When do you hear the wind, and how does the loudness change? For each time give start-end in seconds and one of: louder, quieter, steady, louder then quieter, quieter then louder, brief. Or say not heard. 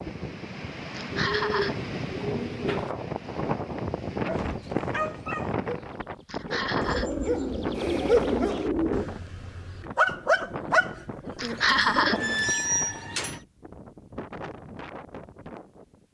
0.0-16.0 quieter.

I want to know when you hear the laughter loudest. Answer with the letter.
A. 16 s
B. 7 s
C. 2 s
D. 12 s
D.